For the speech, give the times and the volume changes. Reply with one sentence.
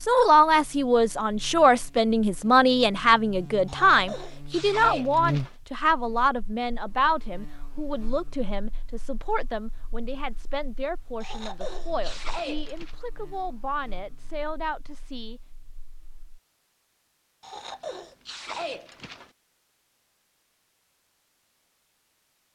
You can hear the speech from 0.0 to 15.4 s, getting quieter.